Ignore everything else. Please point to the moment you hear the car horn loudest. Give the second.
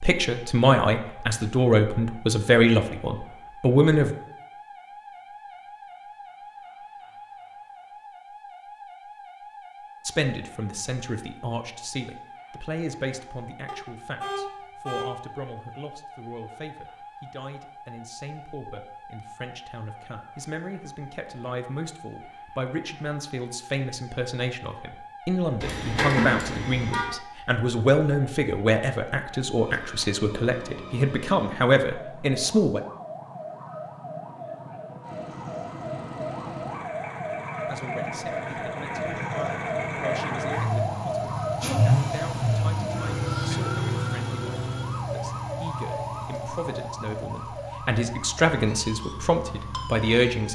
26 s.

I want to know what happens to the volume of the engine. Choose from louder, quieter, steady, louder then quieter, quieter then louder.
louder then quieter.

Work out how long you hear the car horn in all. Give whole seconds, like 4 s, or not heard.
3 s.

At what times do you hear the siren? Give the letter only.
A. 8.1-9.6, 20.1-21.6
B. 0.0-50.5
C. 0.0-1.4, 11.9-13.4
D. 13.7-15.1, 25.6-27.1
B.